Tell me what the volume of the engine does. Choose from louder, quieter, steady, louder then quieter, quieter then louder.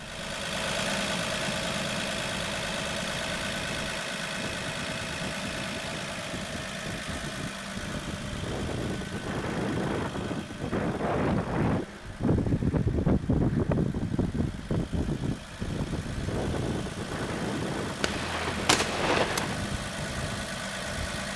quieter then louder.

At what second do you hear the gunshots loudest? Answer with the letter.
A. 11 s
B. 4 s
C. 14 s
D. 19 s
D.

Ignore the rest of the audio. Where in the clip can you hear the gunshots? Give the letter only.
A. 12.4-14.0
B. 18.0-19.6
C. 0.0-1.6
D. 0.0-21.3
B.